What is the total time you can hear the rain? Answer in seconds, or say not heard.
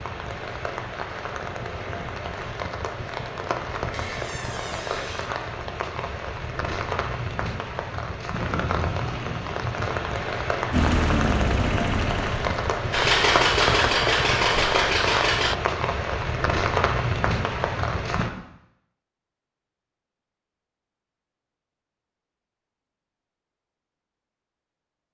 18 s.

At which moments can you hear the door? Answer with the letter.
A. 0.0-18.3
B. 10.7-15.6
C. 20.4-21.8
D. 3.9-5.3
D.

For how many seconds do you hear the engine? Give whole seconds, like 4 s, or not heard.
5 s.